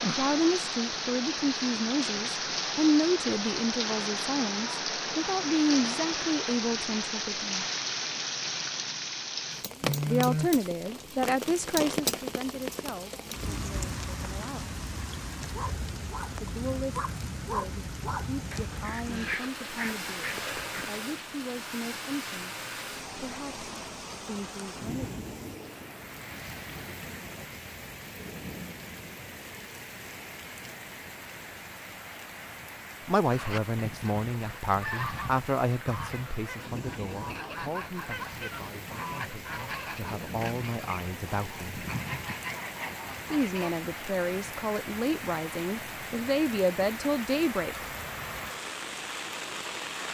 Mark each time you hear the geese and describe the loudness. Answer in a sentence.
The geese can be heard from 33.2 to 43.8 s, at a steady volume.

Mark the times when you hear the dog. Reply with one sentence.
The dog can be heard from 15.4 to 20.9 s.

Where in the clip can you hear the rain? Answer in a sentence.
You can hear the rain from 0.0 to 50.0 s.